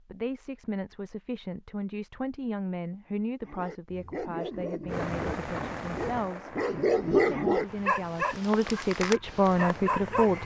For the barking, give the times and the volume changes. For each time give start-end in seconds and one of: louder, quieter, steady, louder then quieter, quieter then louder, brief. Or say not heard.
3.4-10.4 louder then quieter.